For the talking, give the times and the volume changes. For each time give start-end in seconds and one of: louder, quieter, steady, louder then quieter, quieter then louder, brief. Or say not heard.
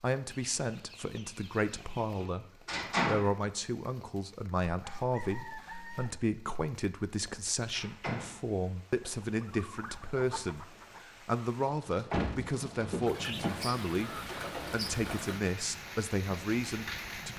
0.0-2.5 brief
3.0-17.3 steady.